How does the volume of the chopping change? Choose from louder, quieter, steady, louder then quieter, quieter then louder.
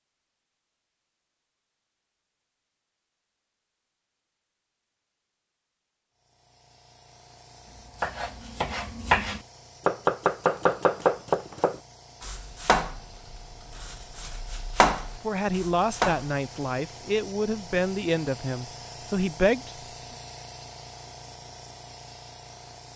quieter then louder.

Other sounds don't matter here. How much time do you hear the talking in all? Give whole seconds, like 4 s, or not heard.
5 s.